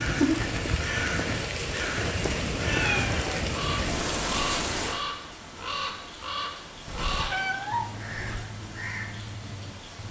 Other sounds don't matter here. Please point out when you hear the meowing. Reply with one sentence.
The meowing can be heard from 2.6 to 3.1 s and from 6.8 to 8.5 s.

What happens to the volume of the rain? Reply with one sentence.
The loudness of the rain goes down.